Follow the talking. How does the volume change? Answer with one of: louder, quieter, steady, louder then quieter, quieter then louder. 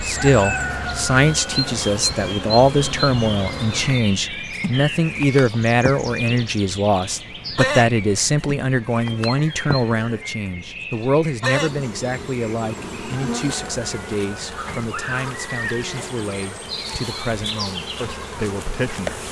quieter.